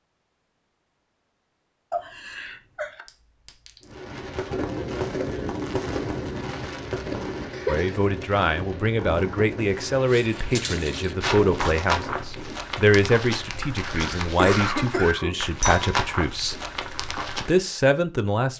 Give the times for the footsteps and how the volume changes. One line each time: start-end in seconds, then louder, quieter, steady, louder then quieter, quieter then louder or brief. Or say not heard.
10.1-17.6 steady.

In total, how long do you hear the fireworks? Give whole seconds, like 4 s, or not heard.
9 s.